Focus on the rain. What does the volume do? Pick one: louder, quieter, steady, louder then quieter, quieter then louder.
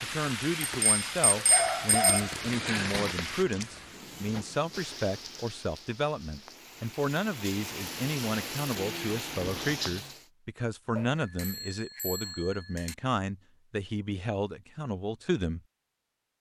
quieter then louder.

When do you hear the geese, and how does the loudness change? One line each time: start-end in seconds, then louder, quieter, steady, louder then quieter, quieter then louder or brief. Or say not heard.
not heard.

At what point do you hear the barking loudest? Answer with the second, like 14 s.
2 s.